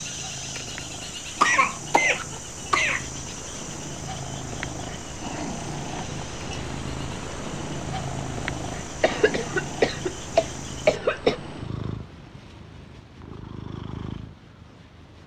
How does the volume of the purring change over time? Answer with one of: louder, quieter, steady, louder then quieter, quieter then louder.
louder then quieter.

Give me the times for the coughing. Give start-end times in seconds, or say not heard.
1.4-3.0, 9.0-11.3.